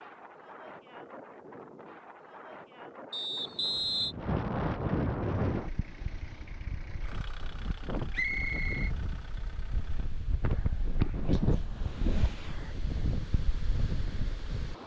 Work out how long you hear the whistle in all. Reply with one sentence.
You can hear the whistle for 2 seconds altogether.